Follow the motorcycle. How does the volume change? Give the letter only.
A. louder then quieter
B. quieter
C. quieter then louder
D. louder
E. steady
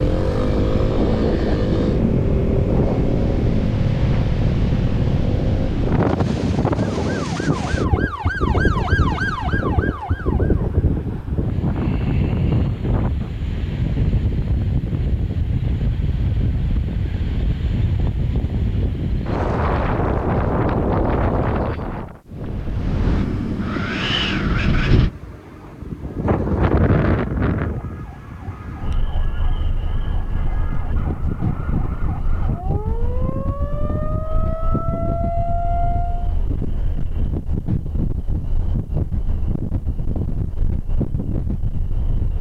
E.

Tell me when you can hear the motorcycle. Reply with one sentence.
The motorcycle can be heard from 0.0 to 5.7 s.